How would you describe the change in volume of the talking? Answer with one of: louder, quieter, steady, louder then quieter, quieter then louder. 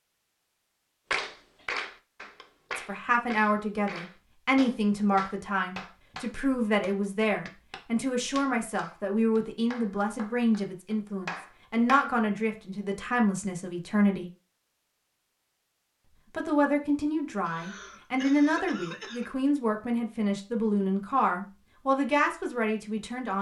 steady.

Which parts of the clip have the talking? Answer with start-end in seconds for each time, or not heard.
2.8-14.3, 16.3-23.3.